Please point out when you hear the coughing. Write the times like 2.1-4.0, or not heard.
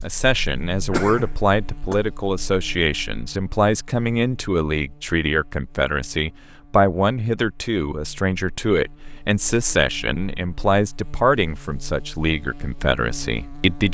0.9-1.9.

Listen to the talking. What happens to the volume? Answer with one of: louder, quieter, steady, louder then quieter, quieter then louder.
steady.